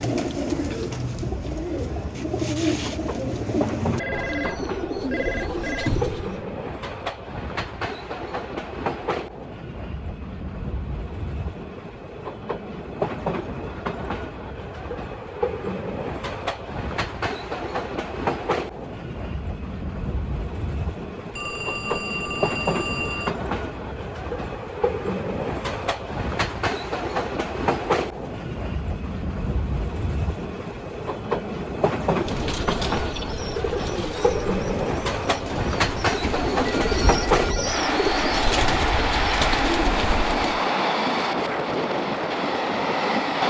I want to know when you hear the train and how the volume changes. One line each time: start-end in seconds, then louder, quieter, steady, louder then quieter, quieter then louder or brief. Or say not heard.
0.0-43.4 louder.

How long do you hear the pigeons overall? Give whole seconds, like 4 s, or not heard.
15 s.